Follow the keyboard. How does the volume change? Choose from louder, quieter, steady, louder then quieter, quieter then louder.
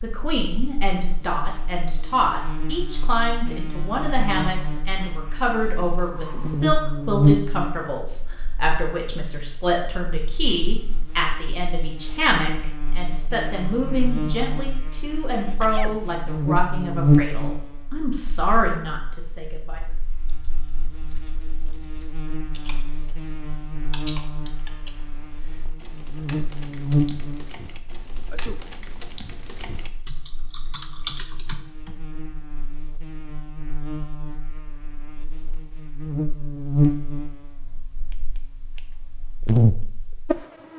louder.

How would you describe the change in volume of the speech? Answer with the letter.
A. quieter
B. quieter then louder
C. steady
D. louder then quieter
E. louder
C.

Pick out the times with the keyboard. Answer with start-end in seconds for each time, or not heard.
20.1-31.9.